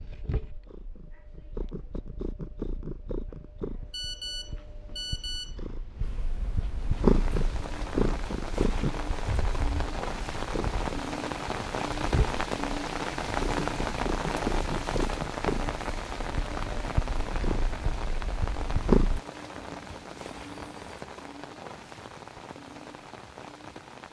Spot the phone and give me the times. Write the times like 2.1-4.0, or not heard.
3.9-5.5, 19.8-21.0.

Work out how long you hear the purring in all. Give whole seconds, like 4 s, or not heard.
19 s.